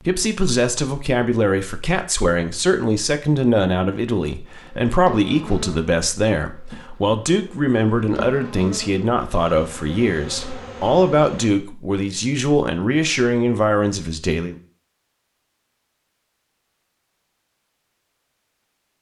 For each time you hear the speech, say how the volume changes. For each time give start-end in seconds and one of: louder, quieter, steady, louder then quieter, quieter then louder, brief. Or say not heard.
0.1-14.6 steady.